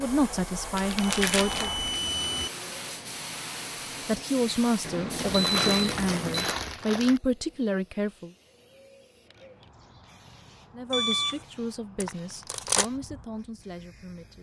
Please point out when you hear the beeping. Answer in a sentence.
You can hear the beeping from 1.0 to 2.5 s, from 4.8 to 6.5 s and from 10.9 to 11.4 s.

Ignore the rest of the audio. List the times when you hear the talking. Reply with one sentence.
The talking can be heard from 0.0 to 1.7 s, from 4.0 to 8.3 s and from 10.7 to 14.3 s.